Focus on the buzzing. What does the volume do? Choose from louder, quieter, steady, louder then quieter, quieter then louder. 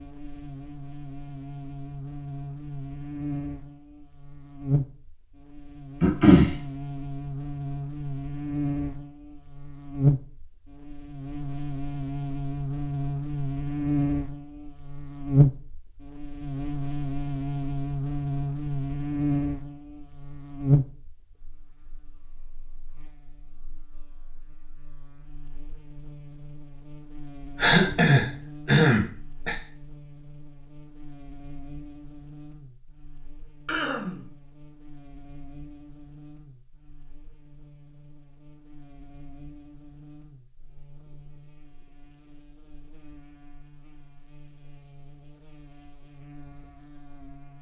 louder then quieter.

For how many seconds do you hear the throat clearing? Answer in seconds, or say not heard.
3 s.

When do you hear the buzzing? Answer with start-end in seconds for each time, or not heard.
0.0-47.5.